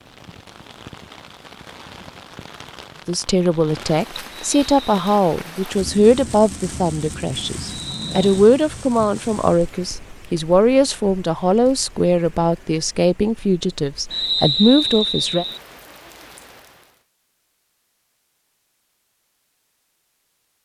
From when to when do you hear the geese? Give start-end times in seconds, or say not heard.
not heard.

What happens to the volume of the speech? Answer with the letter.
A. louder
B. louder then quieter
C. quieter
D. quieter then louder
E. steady
E.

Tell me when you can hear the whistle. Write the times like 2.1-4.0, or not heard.
4.3-5.2, 7.7-8.4, 14.1-15.6.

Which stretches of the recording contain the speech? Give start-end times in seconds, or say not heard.
3.0-15.4.